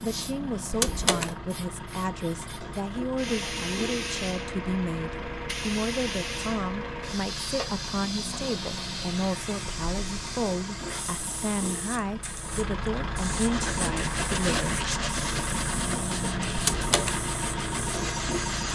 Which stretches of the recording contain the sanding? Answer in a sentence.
The sanding can be heard from 13.4 to 18.6 s.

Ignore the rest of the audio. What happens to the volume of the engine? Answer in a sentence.
The volume of the engine goes up.